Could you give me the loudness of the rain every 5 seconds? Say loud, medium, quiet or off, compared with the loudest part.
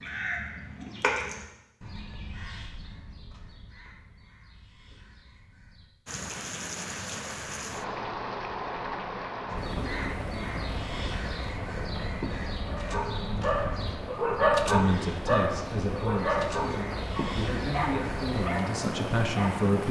off, loud, loud, loud.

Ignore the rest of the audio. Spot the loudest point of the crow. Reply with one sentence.
The loudest moment of the crow is at 1 second.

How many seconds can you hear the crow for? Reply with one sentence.
You can hear the crow for 15 seconds altogether.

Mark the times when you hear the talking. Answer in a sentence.
You can hear the talking from 14.7 to 19.8 s.